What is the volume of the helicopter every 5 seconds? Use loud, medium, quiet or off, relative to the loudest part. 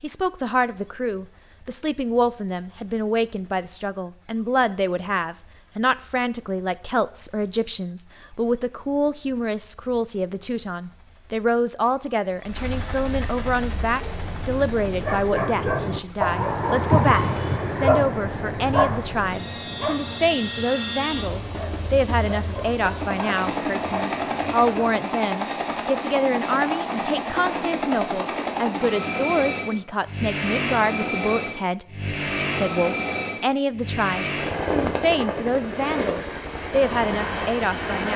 quiet, quiet, quiet, quiet, loud, loud, loud, loud.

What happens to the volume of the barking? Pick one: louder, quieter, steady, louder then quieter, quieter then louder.
louder then quieter.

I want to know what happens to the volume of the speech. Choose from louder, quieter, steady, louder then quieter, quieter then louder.
steady.